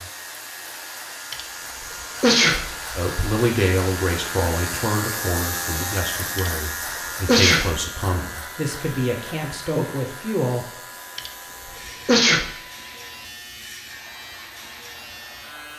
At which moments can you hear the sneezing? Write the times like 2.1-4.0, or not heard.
1.3-3.2, 6.3-7.8, 11.2-12.4.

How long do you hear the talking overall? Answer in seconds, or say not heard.
8 s.